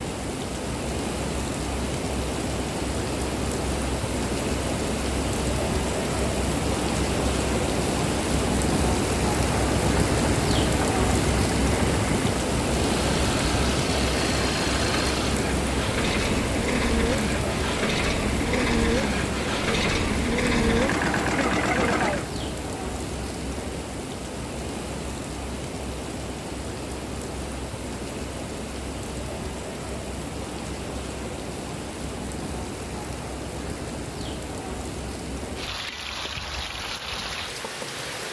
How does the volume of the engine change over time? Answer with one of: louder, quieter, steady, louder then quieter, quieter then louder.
louder.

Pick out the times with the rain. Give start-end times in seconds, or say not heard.
0.0-38.2.